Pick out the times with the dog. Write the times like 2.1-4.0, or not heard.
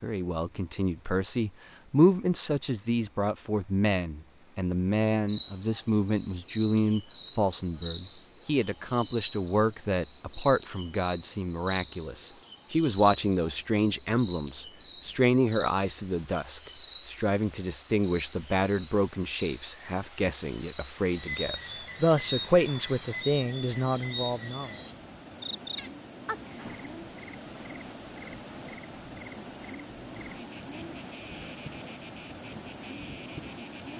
not heard.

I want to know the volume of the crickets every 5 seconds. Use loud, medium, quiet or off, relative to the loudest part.
off, loud, loud, loud, medium, quiet, quiet.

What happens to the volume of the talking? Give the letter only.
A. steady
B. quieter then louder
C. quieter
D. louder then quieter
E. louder
A.